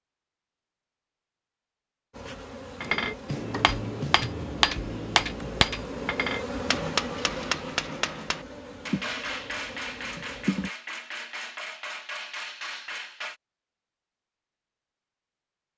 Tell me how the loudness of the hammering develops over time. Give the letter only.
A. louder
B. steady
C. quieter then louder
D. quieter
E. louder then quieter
D.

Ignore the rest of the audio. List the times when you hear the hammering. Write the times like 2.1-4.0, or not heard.
2.8-13.3.